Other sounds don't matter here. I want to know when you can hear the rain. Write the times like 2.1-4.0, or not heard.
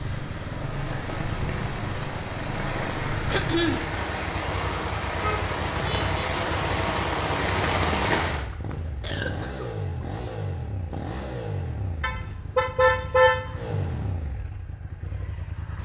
0.0-8.5.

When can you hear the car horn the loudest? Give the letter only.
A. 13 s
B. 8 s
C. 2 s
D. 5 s
A.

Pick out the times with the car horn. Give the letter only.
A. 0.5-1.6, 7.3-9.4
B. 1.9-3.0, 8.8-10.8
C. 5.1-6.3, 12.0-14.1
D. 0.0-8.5
C.